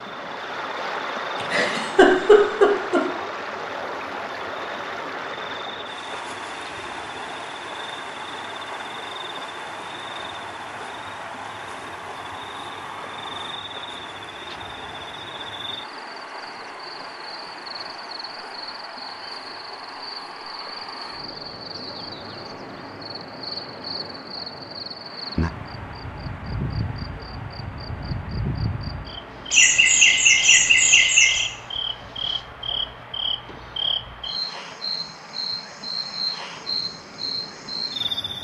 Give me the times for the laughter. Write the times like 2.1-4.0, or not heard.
1.4-3.0, 29.5-31.4.